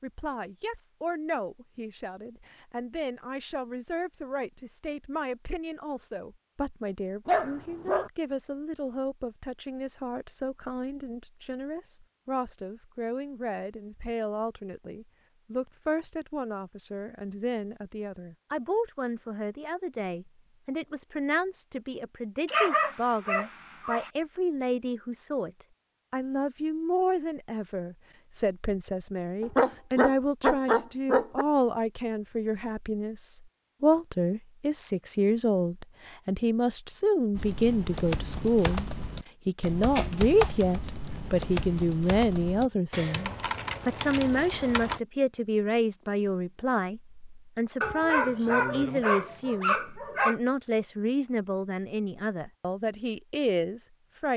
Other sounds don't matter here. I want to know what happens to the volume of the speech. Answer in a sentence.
The loudness of the speech goes up.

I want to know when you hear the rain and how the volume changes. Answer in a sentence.
The rain can't be heard in this clip.